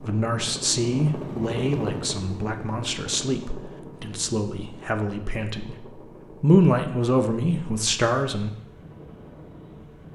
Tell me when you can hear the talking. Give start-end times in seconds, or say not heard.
0.0-8.5.